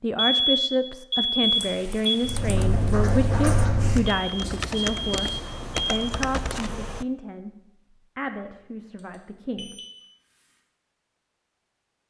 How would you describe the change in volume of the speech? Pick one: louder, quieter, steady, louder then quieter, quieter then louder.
quieter.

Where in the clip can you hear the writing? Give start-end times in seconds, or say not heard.
2.2-5.5.